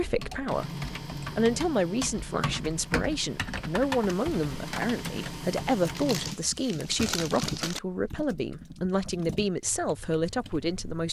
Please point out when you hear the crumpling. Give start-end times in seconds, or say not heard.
6.0-7.8.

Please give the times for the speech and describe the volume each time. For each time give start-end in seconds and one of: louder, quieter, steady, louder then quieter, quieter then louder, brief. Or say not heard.
0.0-0.8 brief
1.4-11.0 steady.